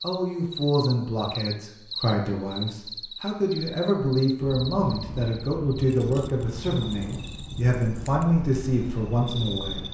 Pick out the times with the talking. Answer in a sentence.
The talking can be heard from 0.0 to 9.9 s.